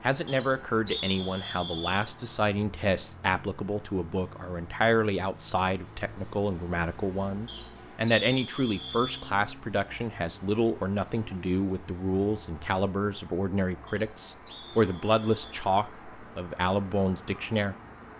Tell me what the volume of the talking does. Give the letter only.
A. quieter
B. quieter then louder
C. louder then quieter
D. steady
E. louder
D.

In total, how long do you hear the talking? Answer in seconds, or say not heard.
18 s.